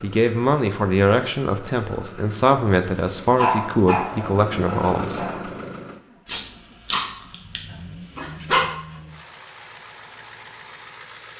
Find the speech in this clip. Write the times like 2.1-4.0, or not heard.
0.0-5.2.